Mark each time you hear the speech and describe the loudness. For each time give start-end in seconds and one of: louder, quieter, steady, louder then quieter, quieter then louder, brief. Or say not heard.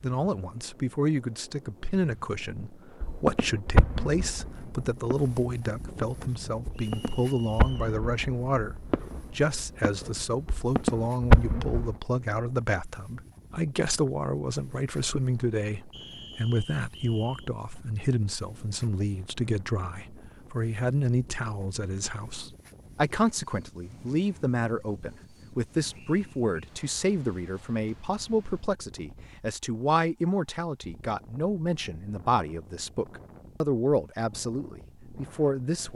0.0-35.9 steady.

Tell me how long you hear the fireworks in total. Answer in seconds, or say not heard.
9 s.